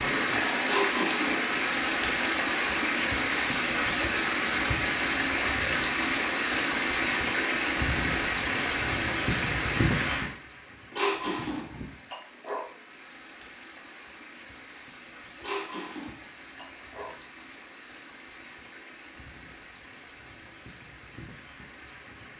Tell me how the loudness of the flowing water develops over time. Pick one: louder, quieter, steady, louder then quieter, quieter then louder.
quieter.